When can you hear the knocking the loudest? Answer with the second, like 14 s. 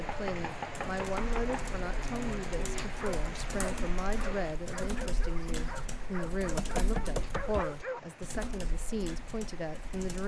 7 s.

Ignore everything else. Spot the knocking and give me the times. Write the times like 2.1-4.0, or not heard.
0.1-1.6, 6.4-7.7.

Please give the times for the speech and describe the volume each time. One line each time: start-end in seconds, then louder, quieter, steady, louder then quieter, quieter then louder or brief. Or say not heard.
0.0-10.2 steady.